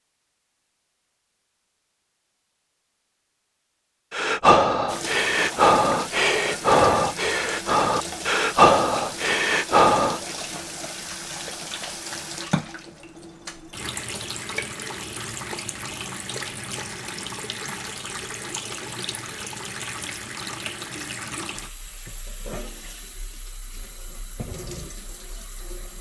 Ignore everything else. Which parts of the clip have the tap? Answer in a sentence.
You can hear the tap from 4.8 to 25.9 s.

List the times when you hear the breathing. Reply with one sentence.
The breathing can be heard from 4.1 to 10.2 s.